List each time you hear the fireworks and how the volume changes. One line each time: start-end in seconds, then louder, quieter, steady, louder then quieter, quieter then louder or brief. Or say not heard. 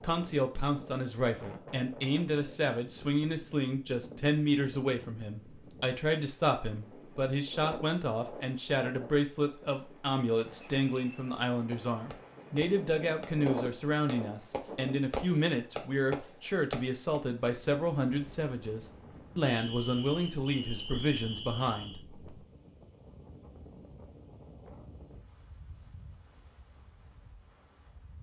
11.2-17.2 louder.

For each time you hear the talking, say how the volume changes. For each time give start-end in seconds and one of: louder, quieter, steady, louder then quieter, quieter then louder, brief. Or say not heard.
0.0-22.2 steady.